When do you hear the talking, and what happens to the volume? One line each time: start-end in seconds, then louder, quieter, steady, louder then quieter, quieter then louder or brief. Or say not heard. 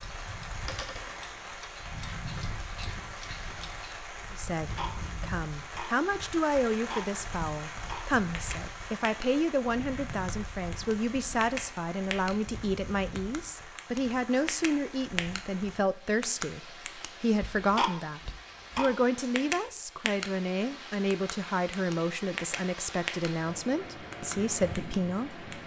4.3-25.4 steady.